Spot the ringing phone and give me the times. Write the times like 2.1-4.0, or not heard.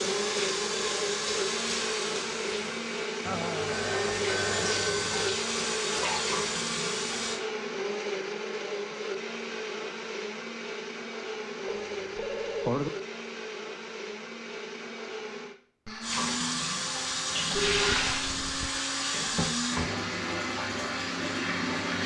3.2-5.4, 11.7-12.9, 17.5-18.8.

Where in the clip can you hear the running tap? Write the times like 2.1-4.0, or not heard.
0.0-7.4, 16.0-22.0.